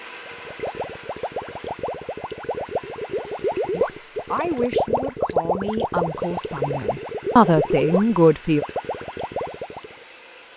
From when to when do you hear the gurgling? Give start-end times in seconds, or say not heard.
0.1-9.9.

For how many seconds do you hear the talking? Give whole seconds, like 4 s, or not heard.
5 s.